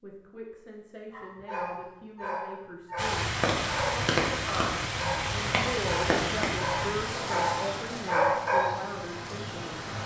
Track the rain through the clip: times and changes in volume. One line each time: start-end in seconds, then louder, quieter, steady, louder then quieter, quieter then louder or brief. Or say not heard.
3.0-10.0 quieter.